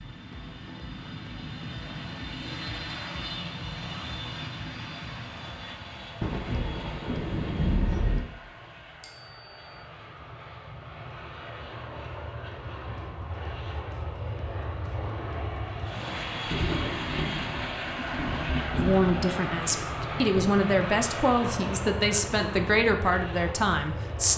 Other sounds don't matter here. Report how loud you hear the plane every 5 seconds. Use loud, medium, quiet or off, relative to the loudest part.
loud, medium, medium, loud, loud.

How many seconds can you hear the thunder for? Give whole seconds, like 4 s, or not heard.
6 s.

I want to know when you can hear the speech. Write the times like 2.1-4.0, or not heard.
18.8-24.3.